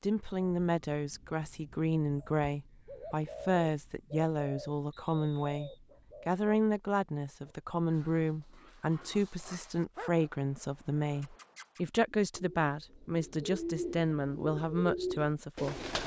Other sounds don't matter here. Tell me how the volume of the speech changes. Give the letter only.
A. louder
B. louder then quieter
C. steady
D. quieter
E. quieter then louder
C.